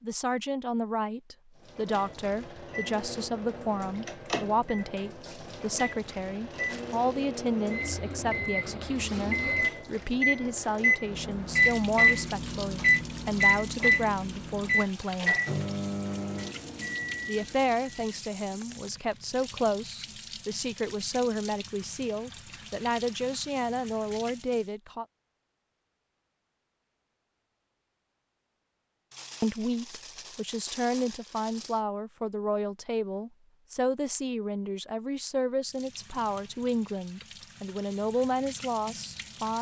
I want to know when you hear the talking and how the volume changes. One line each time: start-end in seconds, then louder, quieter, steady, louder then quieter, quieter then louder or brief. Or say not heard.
0.0-15.3 steady
17.2-25.1 steady
29.4-39.5 steady.